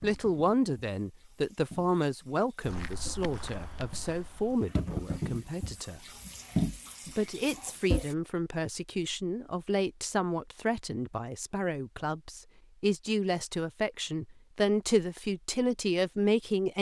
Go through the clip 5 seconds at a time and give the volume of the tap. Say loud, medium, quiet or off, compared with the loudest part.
medium, loud, off, off.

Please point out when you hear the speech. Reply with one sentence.
You can hear the speech from 0.0 to 6.0 s and from 7.2 to 16.7 s.